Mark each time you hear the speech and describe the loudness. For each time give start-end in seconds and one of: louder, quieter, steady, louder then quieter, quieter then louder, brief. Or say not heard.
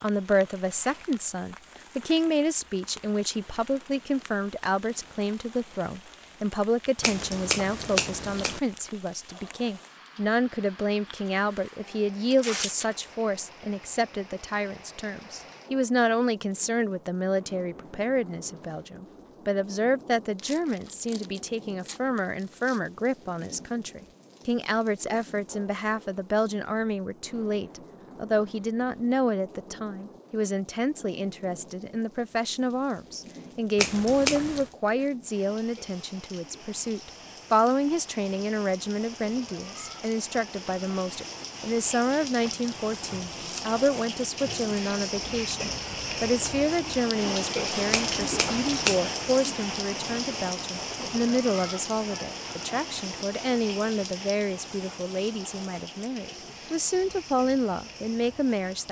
0.0-58.8 steady.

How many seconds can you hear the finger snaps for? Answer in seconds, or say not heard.
4 s.